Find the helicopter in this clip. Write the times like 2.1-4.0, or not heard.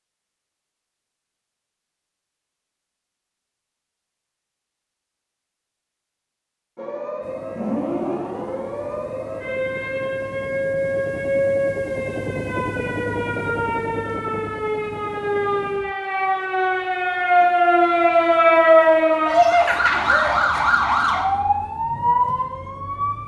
7.2-15.9.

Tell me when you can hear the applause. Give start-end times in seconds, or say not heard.
not heard.